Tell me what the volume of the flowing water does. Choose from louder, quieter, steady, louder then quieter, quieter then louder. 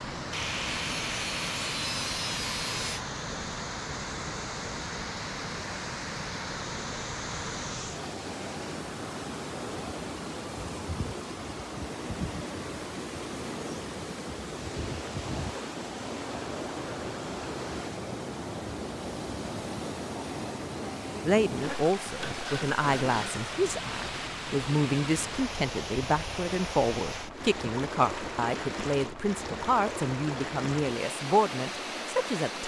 steady.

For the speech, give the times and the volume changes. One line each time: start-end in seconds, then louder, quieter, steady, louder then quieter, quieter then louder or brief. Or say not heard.
21.2-32.6 steady.